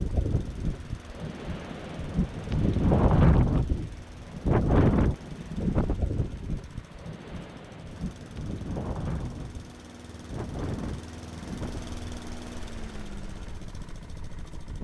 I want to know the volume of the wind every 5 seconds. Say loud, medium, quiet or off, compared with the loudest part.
loud, medium, quiet.